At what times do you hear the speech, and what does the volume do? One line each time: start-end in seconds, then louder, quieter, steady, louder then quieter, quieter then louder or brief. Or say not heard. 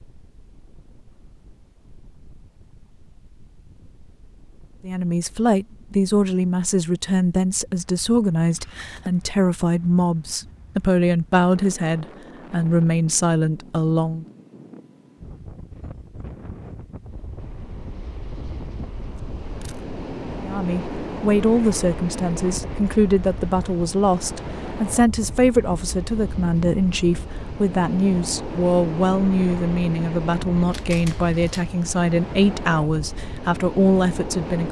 4.8-14.2 steady
20.4-34.6 steady.